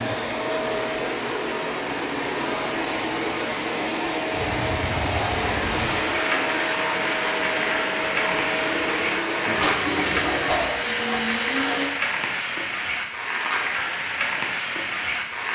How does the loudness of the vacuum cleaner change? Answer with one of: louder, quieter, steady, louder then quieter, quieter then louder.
steady.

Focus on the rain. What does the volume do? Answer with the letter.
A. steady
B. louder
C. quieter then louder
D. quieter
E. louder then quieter
A.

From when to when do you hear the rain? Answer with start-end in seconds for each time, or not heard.
4.3-15.5.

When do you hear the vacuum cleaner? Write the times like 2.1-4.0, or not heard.
0.0-11.9.